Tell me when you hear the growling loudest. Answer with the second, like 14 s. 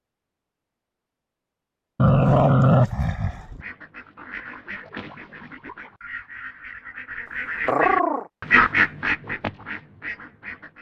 3 s.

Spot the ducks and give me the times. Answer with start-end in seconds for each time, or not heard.
3.4-10.7.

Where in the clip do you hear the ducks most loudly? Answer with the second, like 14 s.
9 s.